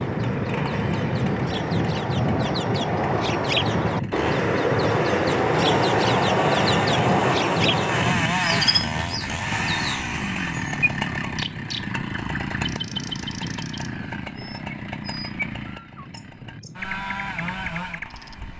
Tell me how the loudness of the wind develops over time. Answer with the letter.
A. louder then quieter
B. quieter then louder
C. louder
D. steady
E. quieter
E.